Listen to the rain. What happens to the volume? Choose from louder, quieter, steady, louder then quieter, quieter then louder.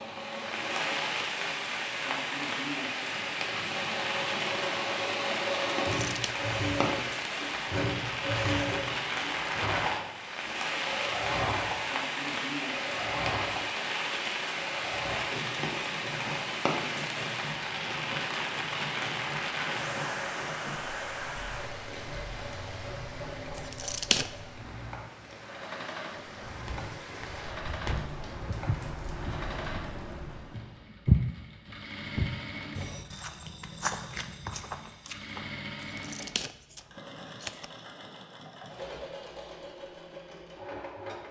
quieter.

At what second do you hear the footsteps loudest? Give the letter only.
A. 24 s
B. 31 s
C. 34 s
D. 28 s
B.